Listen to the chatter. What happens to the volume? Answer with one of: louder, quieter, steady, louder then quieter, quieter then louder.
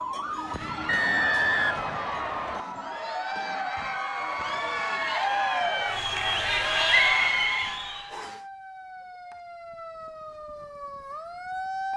louder.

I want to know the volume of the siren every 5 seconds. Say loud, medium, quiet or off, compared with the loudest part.
loud, medium, loud.